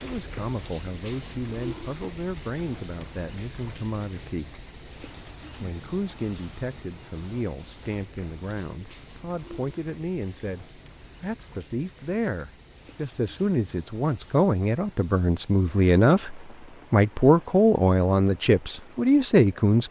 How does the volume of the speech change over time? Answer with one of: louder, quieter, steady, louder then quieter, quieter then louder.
louder.